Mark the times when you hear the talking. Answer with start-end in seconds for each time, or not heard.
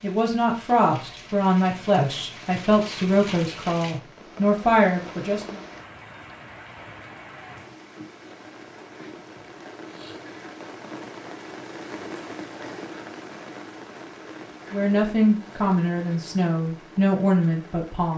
0.0-5.6, 14.7-18.1.